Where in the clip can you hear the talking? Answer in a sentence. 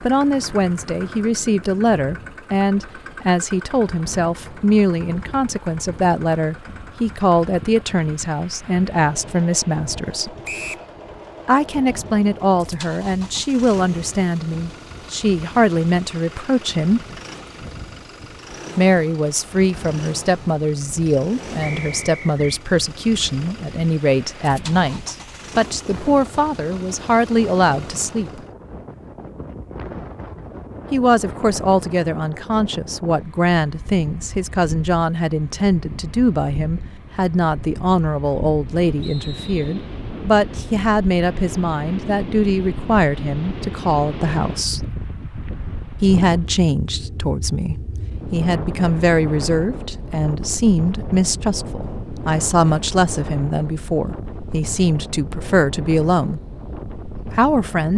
The talking can be heard from 0.0 to 10.3 s, from 11.4 to 17.0 s, from 18.8 to 28.3 s, from 30.9 to 44.9 s, from 46.0 to 56.4 s and from 57.4 to 57.9 s.